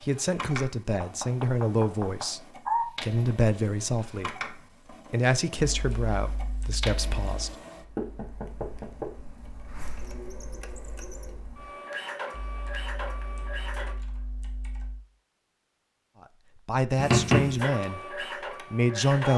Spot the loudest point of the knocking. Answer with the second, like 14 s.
17 s.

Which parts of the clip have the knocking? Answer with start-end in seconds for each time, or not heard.
1.0-2.9, 8.0-9.1, 16.9-17.6.